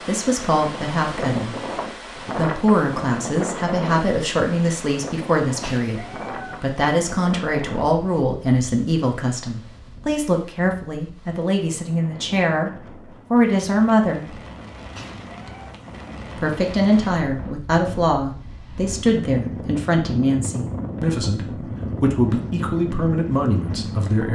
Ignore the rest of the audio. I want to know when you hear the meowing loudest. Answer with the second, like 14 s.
6 s.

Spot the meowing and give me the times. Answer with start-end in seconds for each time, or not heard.
5.6-6.6, 14.9-15.8.